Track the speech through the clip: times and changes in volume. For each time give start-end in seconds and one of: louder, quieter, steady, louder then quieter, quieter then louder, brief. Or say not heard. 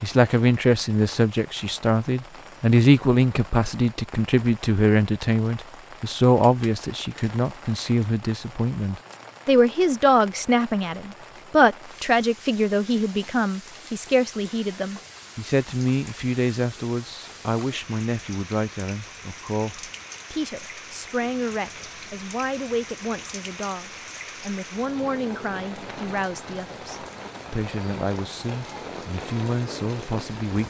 0.0-30.6 quieter.